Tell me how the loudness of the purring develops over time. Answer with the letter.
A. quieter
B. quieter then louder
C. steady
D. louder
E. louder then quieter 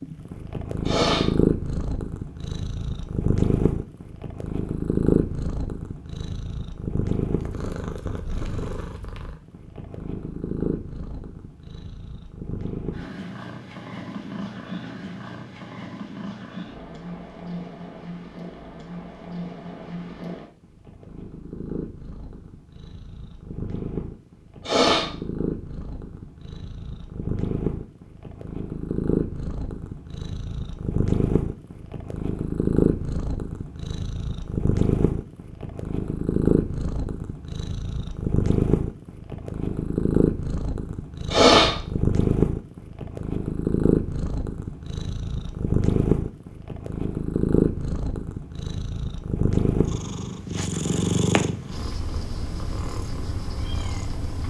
B.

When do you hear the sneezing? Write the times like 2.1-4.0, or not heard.
0.8-1.3, 24.6-25.1, 41.3-41.8.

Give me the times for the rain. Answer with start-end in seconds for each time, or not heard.
not heard.